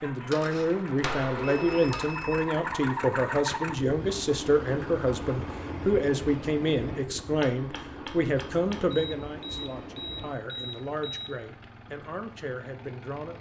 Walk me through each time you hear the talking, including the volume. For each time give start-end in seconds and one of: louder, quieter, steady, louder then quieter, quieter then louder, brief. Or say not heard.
0.0-13.3 quieter.